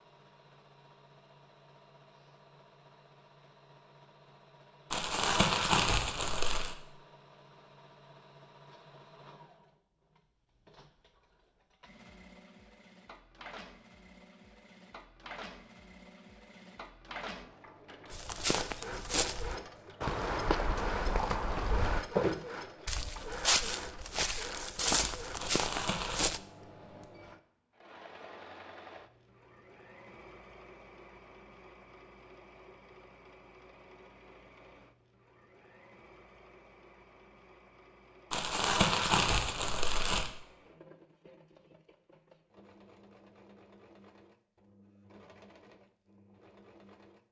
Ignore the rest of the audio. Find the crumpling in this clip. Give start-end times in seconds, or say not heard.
4.9-6.8, 25.4-26.3, 38.3-40.3.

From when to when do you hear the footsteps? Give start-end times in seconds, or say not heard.
18.1-26.4.